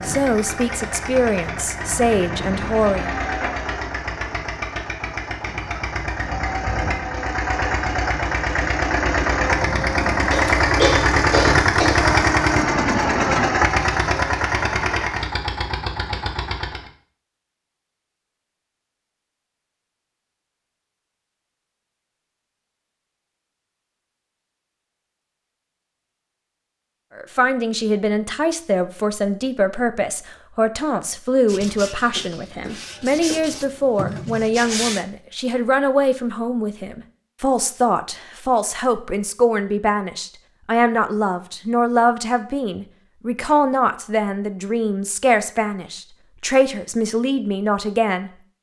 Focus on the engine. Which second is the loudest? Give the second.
12 s.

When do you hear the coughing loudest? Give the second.
11 s.